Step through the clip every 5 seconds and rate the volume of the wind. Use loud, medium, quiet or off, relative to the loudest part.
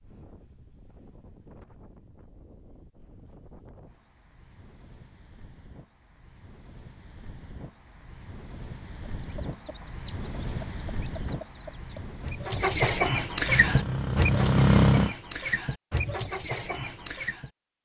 quiet, medium, loud, off.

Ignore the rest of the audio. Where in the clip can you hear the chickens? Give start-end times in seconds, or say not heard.
9.1-17.5.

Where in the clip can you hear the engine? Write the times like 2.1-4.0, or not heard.
13.4-15.2.